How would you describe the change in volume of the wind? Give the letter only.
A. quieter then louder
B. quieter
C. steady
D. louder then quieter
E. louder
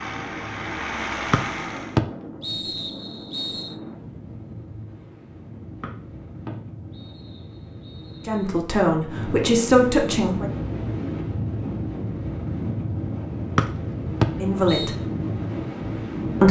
E.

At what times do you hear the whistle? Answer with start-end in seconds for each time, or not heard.
1.3-3.8, 5.8-8.5, 13.6-14.9.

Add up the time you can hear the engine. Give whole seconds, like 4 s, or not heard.
2 s.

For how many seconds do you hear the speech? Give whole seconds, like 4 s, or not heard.
3 s.